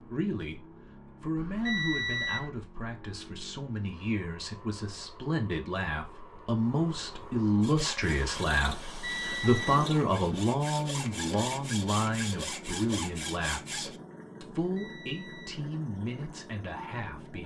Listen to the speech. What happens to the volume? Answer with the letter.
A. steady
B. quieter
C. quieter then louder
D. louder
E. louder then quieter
E.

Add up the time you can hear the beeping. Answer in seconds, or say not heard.
3 s.